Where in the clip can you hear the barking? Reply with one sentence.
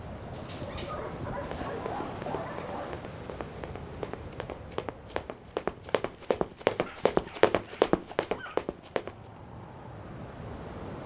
You can hear the barking from 0.3 to 3.0 s and from 6.8 to 8.7 s.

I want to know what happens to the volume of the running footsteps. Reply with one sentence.
The volume of the running footsteps goes up.